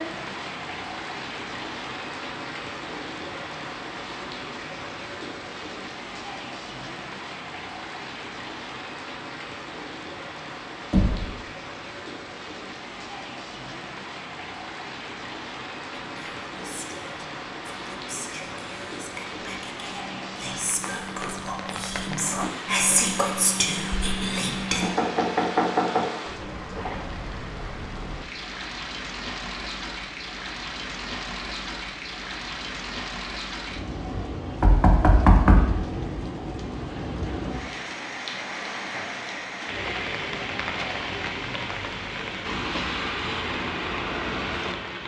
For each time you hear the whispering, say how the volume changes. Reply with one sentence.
You can hear the whispering from 16.2 to 24.9 s, getting louder.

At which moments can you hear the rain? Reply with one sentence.
You can hear the rain from 0.0 to 45.0 s.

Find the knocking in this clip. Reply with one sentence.
The knocking can be heard from 10.9 to 11.3 s, from 24.8 to 26.1 s and from 34.6 to 35.8 s.